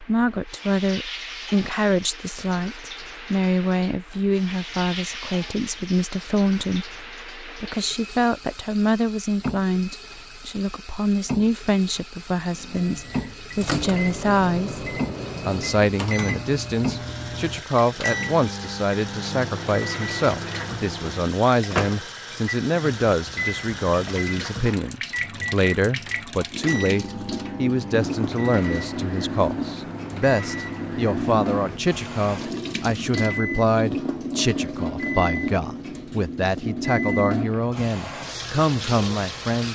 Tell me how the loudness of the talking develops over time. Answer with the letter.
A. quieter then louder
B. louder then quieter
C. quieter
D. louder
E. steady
E.